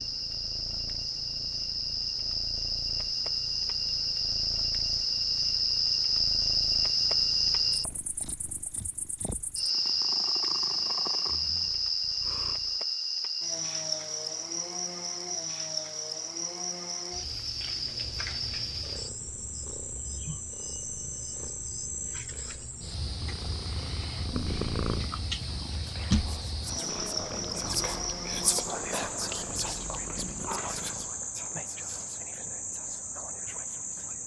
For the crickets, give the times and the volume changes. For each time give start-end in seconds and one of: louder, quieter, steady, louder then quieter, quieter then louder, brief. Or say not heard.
0.0-34.2 quieter.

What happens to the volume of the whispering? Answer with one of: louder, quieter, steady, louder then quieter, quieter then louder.
louder then quieter.